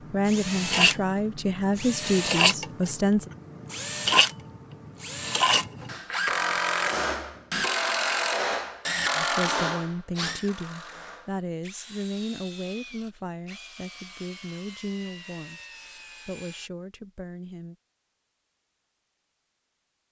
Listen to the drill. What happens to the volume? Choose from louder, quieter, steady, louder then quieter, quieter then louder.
quieter.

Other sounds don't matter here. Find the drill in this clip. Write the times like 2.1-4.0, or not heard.
0.0-16.7.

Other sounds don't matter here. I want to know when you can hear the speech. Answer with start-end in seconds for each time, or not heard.
0.1-3.3, 9.2-15.6, 16.2-17.8.